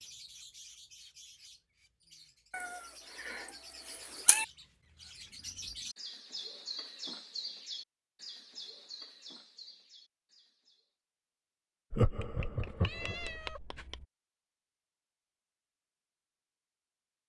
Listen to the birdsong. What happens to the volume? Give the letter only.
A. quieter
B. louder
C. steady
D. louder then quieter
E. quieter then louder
D.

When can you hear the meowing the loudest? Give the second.
4 s.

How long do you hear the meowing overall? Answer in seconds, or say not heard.
4 s.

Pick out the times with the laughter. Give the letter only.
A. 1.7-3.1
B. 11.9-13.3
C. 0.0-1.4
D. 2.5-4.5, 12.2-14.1
B.